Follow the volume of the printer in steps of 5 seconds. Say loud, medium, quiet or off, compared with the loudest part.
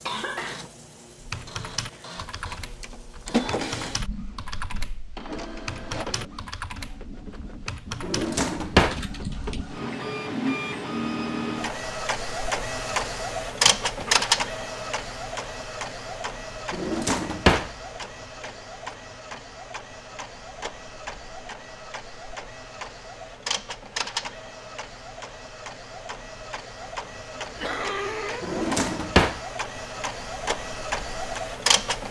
medium, medium, loud, medium, medium, medium, loud.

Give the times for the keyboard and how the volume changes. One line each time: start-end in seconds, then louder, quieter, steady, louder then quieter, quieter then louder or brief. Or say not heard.
1.2-9.7 steady.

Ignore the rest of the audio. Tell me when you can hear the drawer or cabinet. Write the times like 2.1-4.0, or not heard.
8.0-9.0, 16.7-17.7, 28.4-29.4.